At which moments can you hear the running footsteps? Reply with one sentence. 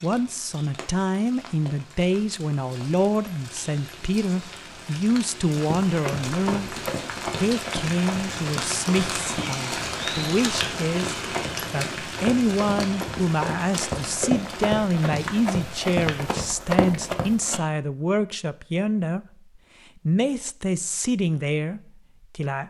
You can hear the running footsteps from 5.7 to 17.6 s.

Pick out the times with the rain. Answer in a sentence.
You can hear the rain from 0.0 to 16.4 s.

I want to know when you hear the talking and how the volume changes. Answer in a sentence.
You can hear the talking from 0.0 to 19.2 s, at a steady volume; and briefly from 20.1 to 22.6 s.